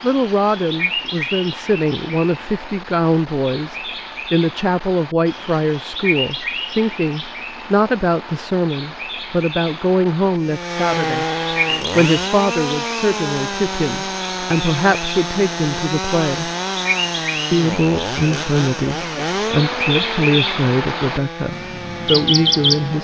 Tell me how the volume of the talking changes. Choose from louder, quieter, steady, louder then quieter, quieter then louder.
steady.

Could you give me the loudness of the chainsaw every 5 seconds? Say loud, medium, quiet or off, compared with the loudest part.
off, off, loud, loud, medium.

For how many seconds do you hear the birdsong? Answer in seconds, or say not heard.
23 s.